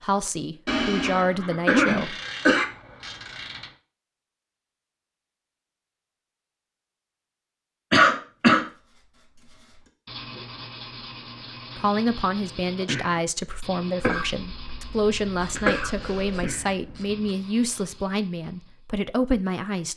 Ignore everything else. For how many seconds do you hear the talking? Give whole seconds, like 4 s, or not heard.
10 s.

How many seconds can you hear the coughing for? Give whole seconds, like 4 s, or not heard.
5 s.